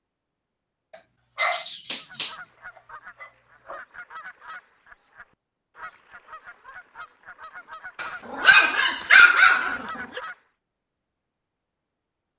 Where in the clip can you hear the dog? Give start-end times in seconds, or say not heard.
0.9-3.8, 8.0-10.2.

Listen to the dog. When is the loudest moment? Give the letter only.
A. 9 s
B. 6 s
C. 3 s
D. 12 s
A.